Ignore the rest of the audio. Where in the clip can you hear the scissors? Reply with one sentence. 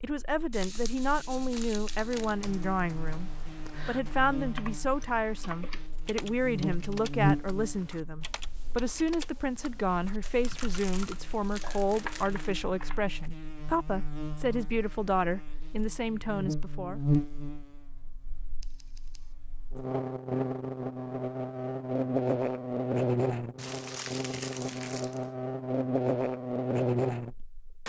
The scissors can be heard from 18.6 to 19.4 s.